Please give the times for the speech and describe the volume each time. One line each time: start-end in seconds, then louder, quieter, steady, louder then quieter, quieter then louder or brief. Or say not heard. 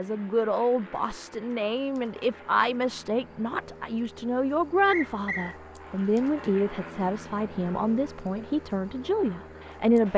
0.0-10.1 steady.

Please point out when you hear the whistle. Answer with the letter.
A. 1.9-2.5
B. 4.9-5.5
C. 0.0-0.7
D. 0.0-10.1
B.